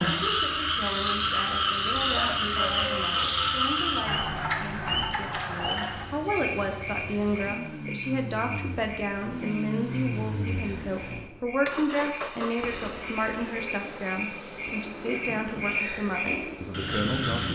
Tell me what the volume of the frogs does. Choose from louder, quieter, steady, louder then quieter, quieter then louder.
quieter then louder.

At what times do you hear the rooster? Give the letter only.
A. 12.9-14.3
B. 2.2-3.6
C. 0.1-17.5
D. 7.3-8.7
B.